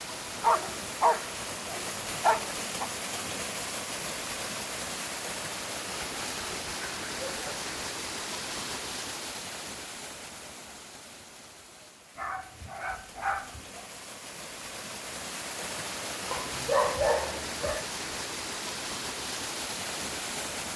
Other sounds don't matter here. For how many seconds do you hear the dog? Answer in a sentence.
The dog can be heard for 7 seconds in total.